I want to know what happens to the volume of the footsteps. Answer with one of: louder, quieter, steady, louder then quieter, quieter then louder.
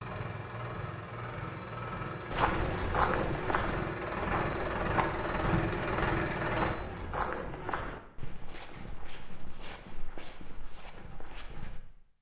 quieter.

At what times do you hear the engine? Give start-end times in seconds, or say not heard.
0.0-6.8.